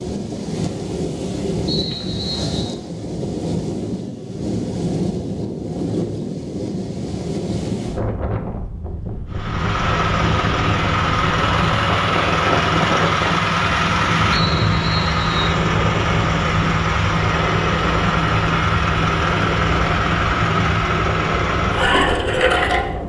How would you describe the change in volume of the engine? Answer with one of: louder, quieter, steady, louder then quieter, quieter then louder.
steady.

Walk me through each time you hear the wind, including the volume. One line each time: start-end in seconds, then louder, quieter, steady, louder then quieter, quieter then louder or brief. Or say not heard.
0.0-23.0 steady.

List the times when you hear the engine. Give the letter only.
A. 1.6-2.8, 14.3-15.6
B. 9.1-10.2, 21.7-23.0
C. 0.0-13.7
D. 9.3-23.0
D.